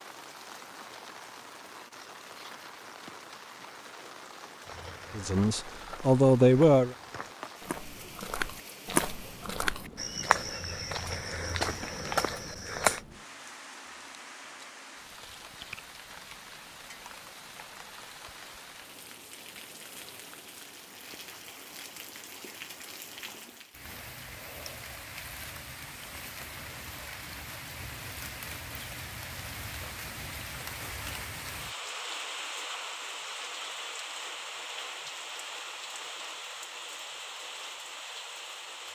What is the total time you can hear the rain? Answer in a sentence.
You can hear the rain for 39 seconds altogether.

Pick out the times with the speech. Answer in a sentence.
The speech can be heard from 5.2 to 7.0 s.